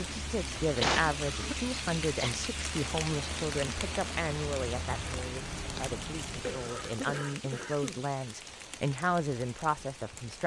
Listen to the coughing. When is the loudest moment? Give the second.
1 s.